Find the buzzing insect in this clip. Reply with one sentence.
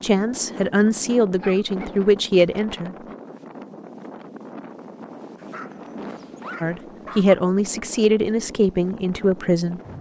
You can't hear the buzzing insect here.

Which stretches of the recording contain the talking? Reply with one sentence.
The talking can be heard from 0.0 to 3.0 s and from 6.6 to 9.8 s.